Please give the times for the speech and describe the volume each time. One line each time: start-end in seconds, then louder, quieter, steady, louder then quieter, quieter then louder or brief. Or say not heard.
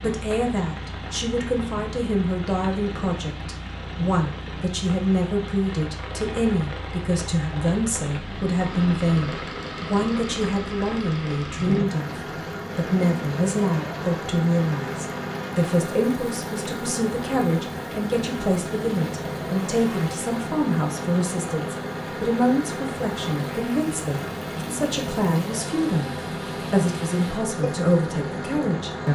0.0-29.0 steady.